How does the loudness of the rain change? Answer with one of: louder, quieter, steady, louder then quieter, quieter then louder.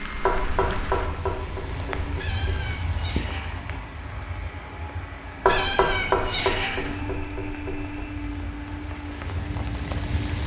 quieter then louder.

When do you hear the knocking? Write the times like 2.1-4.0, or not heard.
0.2-2.7, 5.5-7.9.